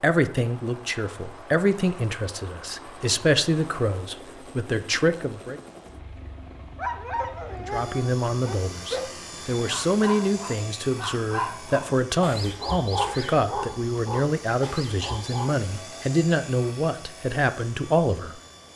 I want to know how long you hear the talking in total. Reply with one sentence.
You can hear the talking for 17 seconds altogether.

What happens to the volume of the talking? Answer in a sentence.
The loudness of the talking stays about the same.